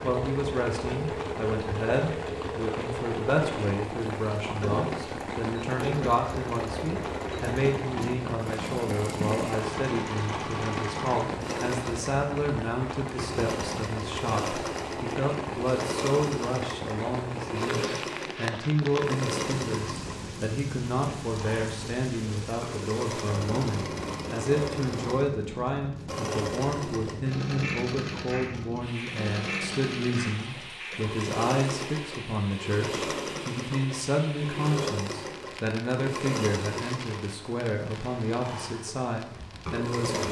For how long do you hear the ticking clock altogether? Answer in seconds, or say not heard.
not heard.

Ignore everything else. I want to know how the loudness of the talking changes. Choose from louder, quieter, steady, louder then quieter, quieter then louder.
steady.